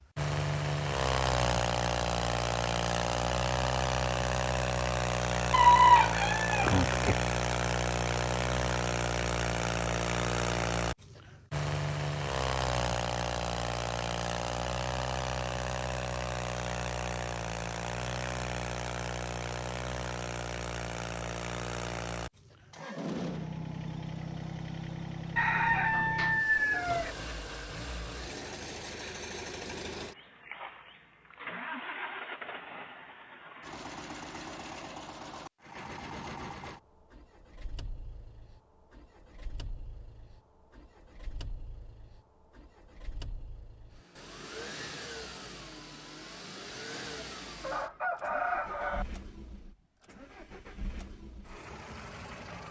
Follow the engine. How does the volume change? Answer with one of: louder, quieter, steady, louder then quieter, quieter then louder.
quieter.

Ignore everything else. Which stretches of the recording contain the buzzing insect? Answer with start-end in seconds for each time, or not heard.
not heard.